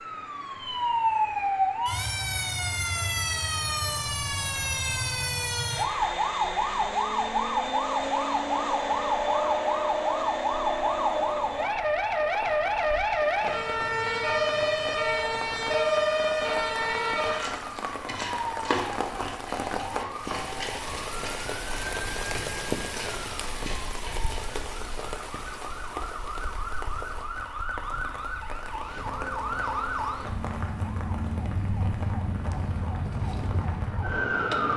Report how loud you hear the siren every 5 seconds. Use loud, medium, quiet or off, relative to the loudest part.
loud, loud, loud, loud, quiet, medium, medium.